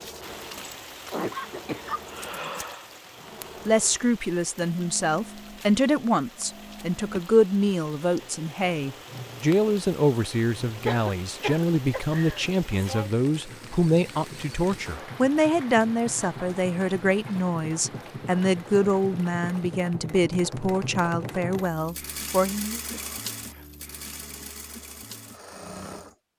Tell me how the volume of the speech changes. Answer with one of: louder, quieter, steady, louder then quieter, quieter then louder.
steady.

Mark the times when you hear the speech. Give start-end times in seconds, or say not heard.
3.6-22.8.